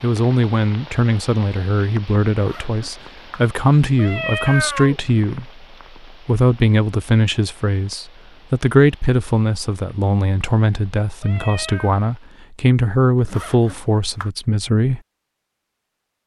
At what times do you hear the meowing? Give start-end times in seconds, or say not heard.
4.0-5.0, 11.2-11.9.